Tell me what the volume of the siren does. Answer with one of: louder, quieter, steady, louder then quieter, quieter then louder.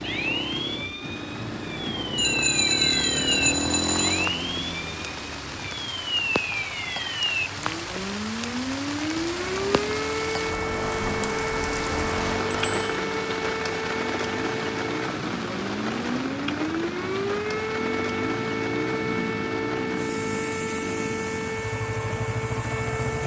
steady.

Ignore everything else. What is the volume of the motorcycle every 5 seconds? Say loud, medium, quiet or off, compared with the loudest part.
loud, medium, loud, loud, loud.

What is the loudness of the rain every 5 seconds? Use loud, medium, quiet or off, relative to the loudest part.
medium, loud, loud, loud, medium.